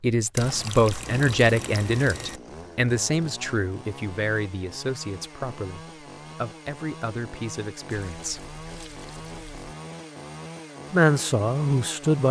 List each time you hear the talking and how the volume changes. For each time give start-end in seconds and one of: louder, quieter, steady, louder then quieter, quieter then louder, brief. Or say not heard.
0.0-8.4 quieter
10.9-12.2 brief.